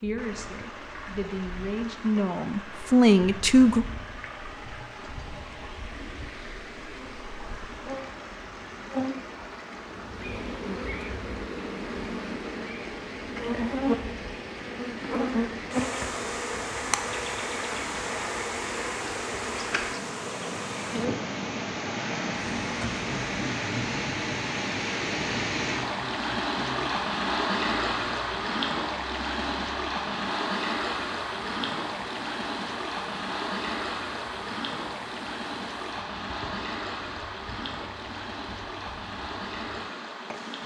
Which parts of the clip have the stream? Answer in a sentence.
You can hear the stream from 0.0 to 40.6 s.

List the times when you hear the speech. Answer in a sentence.
You can hear the speech from 0.0 to 3.9 s.